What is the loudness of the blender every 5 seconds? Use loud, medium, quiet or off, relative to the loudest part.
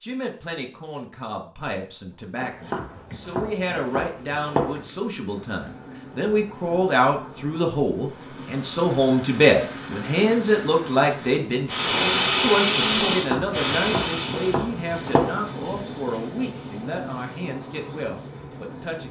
off, quiet, loud, off.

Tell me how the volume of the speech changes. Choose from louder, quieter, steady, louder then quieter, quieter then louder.
louder then quieter.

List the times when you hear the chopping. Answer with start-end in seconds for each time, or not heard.
2.4-4.8, 13.1-15.4.